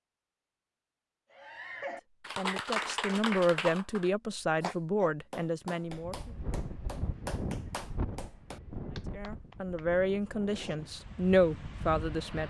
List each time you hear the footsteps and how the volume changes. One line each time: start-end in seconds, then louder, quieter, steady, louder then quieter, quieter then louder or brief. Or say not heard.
not heard.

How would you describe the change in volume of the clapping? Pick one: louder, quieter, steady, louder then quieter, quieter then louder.
quieter.